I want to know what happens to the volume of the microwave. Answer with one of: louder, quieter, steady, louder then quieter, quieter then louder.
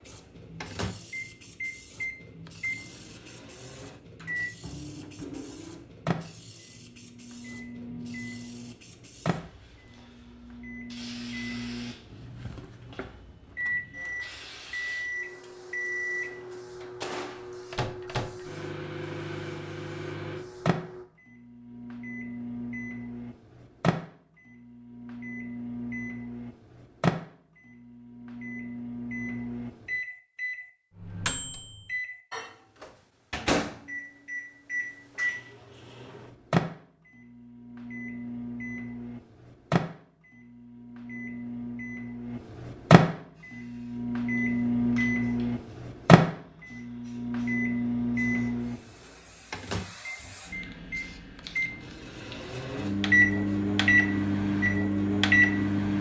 louder.